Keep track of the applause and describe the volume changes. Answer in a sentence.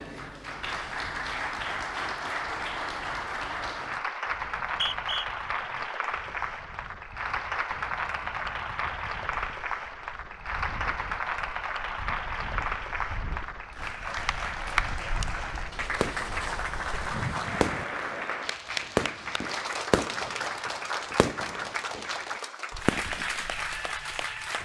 The volume of the applause stays about the same.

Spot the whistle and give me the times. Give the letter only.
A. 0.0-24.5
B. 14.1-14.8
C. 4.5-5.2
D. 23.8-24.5
C.